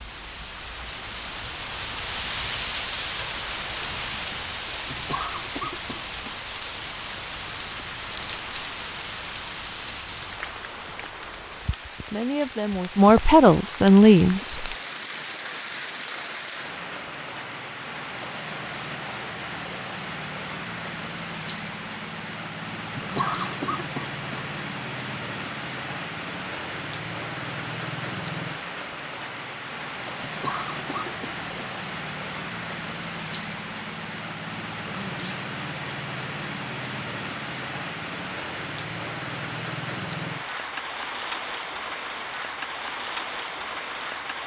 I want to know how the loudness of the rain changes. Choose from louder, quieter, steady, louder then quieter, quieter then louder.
steady.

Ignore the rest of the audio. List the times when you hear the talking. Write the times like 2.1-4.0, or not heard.
12.1-14.8.